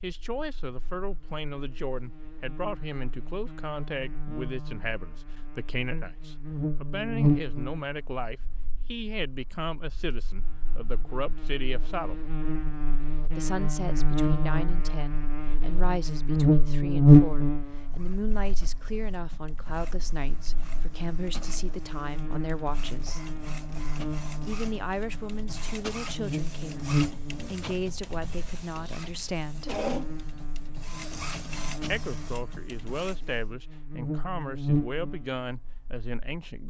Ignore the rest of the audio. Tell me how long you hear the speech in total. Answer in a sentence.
You can hear the speech for 32 seconds altogether.